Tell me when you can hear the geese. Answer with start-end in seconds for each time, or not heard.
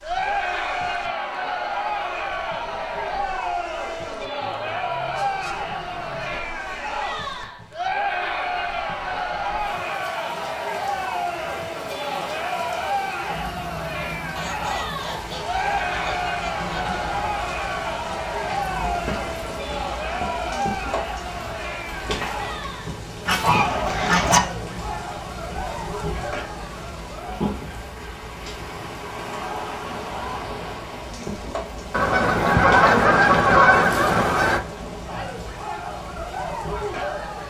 4.4-6.4, 14.3-16.9, 23.2-24.4, 31.9-34.6.